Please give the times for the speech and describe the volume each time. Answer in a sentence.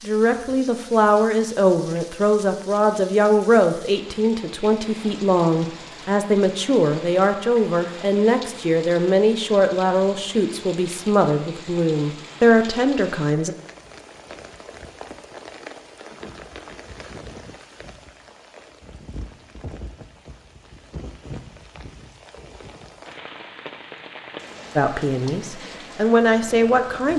The speech can be heard from 0.0 to 13.6 s, at a steady volume; and briefly from 24.8 to 27.1 s.